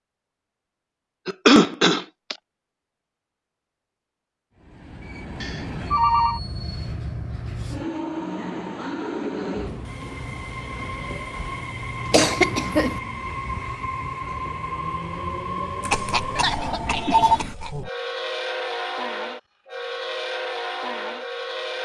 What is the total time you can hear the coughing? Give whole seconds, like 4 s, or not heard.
4 s.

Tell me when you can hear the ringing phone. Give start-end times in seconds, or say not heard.
5.4-6.4, 15.8-17.4.